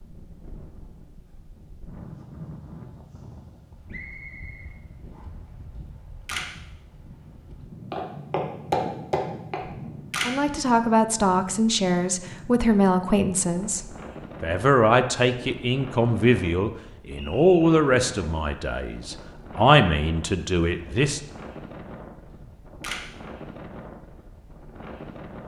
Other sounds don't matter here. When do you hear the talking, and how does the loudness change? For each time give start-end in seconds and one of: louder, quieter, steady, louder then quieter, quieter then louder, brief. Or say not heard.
10.2-21.2 steady.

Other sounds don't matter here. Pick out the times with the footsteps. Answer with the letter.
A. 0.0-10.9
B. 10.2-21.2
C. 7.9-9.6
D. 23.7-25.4
C.